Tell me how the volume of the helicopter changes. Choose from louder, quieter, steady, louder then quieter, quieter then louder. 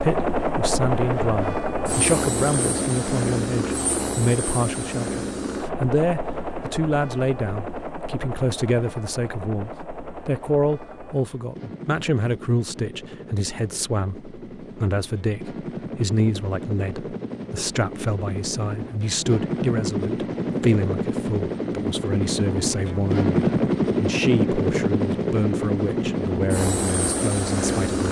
quieter then louder.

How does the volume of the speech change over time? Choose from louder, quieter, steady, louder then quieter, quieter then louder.
steady.